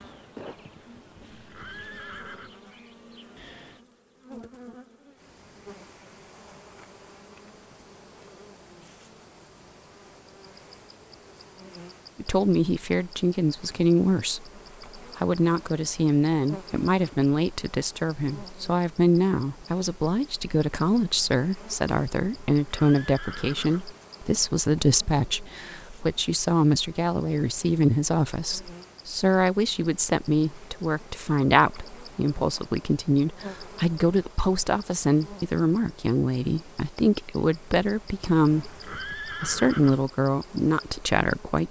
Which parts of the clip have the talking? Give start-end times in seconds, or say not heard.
12.2-38.7, 39.4-41.6.